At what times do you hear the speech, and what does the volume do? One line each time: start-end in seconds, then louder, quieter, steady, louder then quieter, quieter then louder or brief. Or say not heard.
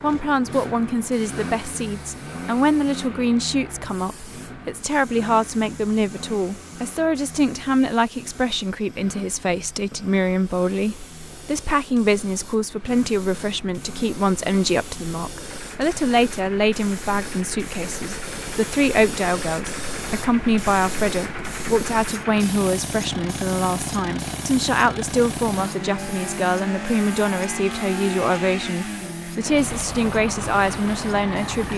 0.0-31.7 steady.